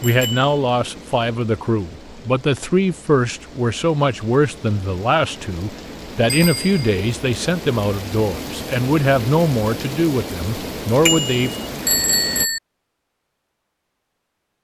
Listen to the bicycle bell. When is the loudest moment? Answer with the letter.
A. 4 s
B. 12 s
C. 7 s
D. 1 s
B.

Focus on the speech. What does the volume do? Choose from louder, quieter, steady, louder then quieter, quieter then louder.
steady.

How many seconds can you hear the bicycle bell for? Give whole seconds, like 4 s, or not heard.
3 s.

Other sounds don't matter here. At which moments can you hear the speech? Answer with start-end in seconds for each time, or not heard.
0.0-11.5.